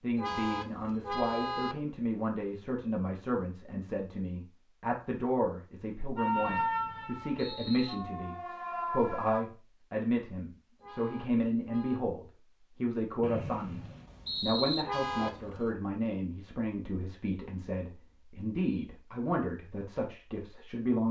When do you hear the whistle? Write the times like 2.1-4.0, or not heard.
6.3-8.0, 13.2-14.8.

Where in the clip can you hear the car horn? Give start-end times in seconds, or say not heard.
0.1-1.8, 10.8-12.0, 14.8-15.8.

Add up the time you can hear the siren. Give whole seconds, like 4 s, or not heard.
3 s.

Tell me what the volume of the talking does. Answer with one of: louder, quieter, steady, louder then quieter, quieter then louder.
steady.